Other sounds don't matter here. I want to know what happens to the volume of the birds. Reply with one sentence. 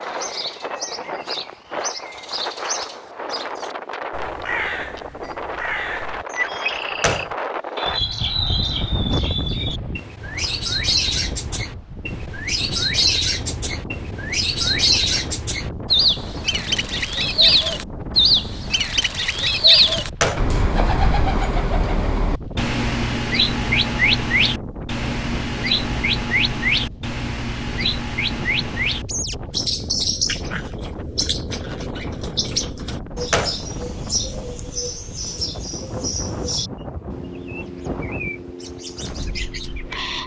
The loudness of the birds goes up, then down.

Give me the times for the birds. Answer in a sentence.
You can hear the birds from 0.0 to 40.2 s.